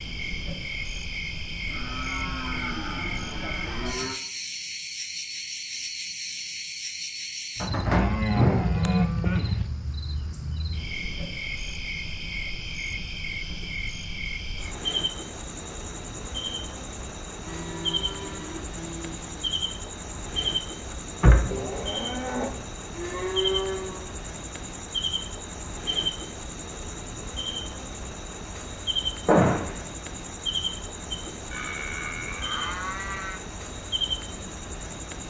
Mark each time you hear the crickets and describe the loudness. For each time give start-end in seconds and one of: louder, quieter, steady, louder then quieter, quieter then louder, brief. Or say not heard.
0.0-35.2 steady.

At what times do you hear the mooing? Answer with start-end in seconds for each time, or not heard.
1.6-4.2, 7.7-9.7, 17.4-19.6, 21.5-24.1, 31.5-33.4.